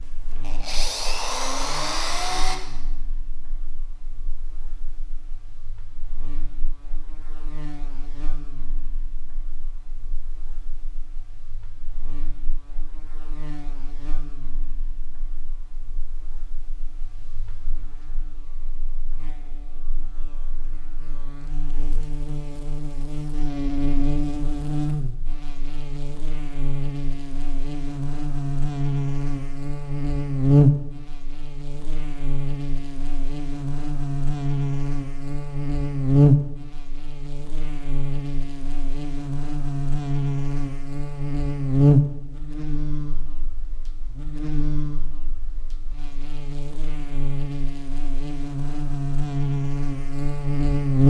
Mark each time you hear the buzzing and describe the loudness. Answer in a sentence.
The buzzing can be heard from 0.0 to 51.0 s, getting louder.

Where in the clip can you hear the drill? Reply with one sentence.
You can hear the drill from 0.0 to 2.6 s.